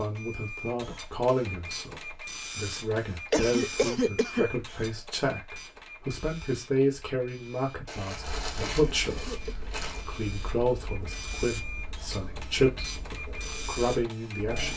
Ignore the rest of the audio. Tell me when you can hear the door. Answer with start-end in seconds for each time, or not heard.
not heard.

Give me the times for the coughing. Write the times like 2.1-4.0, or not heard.
3.3-4.5, 8.7-9.7.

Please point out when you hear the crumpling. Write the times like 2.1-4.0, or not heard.
7.8-10.1.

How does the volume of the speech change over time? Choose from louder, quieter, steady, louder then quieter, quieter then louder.
steady.